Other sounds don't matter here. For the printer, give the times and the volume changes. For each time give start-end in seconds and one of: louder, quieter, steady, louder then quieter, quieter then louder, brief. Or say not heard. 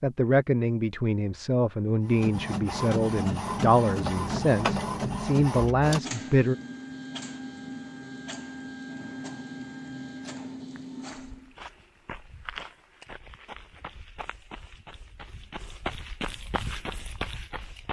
2.1-11.6 quieter.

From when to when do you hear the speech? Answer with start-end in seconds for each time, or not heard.
0.0-6.5.